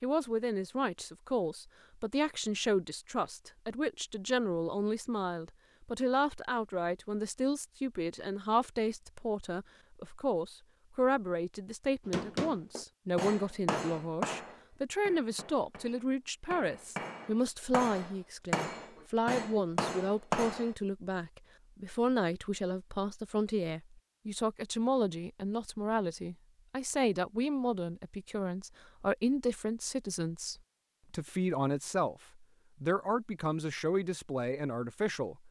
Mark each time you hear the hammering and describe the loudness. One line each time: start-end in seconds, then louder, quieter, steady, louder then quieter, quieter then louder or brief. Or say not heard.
12.1-20.8 quieter then louder.